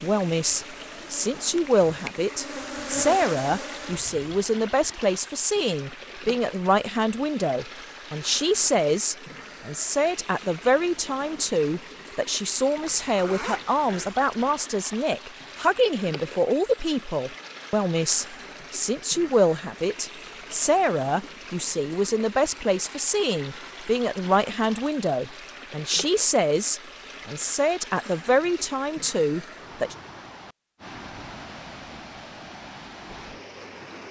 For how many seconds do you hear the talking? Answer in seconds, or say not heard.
30 s.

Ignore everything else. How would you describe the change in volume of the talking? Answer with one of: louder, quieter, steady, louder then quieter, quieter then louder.
steady.